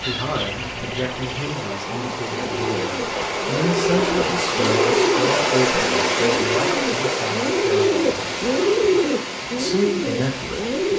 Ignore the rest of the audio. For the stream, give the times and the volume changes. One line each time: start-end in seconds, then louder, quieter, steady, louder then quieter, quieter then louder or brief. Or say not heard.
0.0-10.9 louder then quieter.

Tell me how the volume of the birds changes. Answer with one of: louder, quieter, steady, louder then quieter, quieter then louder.
louder.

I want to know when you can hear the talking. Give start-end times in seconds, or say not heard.
0.0-8.2, 9.6-10.9.